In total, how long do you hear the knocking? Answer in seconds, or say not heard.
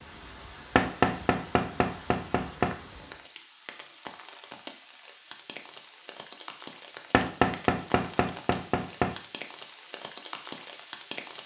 4 s.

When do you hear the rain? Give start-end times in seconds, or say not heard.
0.0-11.4.